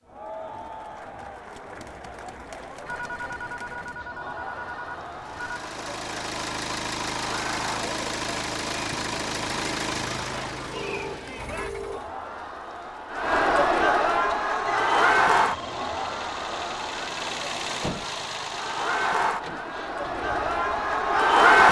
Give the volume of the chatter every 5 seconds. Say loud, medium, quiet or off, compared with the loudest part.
quiet, quiet, medium, medium, loud.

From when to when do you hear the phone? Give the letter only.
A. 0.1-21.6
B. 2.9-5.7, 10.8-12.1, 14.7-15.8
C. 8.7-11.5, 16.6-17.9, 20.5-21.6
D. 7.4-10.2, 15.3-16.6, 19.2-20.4
B.